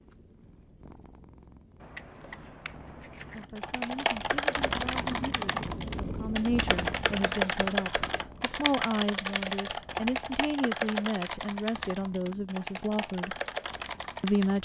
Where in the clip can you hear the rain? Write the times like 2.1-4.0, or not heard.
not heard.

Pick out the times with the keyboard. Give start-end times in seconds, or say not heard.
3.4-14.5.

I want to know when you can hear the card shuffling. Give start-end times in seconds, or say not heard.
1.8-3.5.